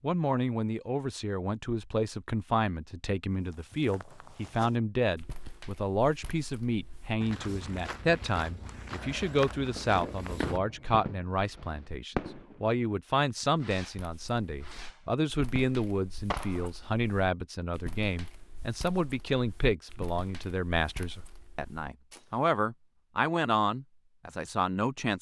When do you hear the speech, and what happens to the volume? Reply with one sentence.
The speech can be heard from 0.0 to 25.1 s, at a steady volume.